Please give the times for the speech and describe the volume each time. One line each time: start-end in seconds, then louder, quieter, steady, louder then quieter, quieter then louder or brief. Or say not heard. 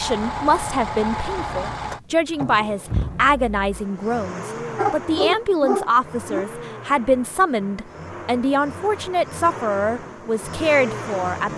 0.0-11.5 steady.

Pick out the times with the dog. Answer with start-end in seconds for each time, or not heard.
4.8-6.5.